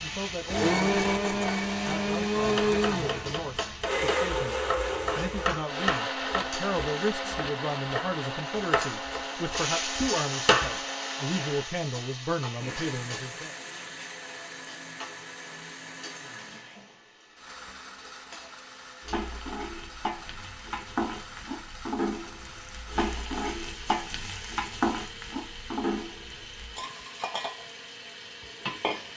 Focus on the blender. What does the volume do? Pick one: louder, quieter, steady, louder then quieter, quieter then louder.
quieter.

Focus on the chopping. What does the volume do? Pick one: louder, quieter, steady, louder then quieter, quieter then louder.
louder.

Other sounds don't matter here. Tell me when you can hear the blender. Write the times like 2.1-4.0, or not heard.
0.0-29.1.